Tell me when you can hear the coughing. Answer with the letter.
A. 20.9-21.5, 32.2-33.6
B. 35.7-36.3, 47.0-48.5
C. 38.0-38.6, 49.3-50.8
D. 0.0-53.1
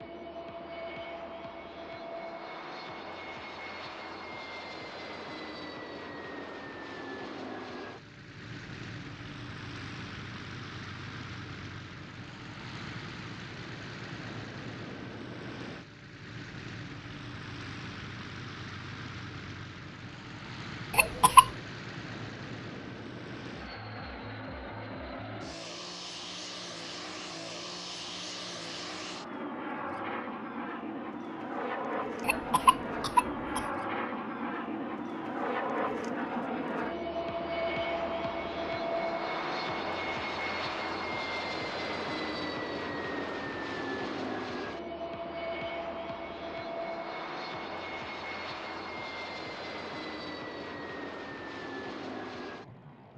A.